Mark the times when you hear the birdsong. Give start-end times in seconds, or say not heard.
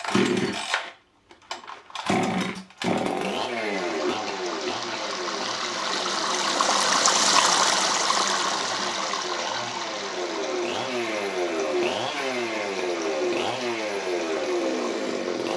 not heard.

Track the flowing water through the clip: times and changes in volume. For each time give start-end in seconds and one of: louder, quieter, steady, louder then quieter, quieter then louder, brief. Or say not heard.
3.6-15.5 louder then quieter.